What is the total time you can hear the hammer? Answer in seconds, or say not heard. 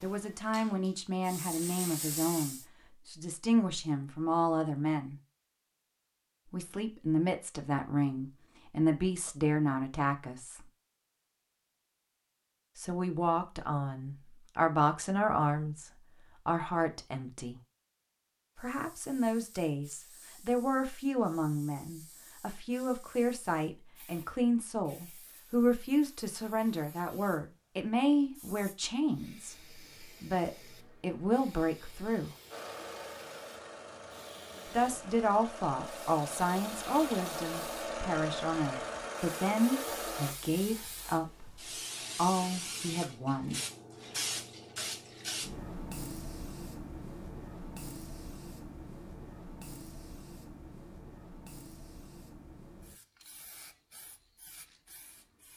not heard.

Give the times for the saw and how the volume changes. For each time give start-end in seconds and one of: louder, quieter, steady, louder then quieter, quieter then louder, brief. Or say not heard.
not heard.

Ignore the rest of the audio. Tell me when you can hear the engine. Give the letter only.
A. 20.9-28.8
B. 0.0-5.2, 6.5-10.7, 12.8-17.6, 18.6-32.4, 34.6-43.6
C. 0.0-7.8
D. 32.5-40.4
D.